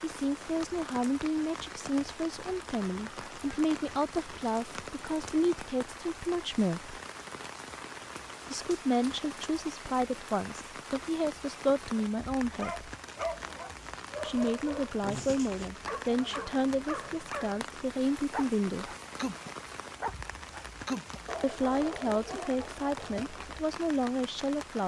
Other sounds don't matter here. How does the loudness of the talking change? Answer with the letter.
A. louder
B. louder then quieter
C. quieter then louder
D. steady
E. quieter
D.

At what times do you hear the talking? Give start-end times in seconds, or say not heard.
0.0-7.0, 8.4-12.9, 14.2-18.9, 21.4-24.8.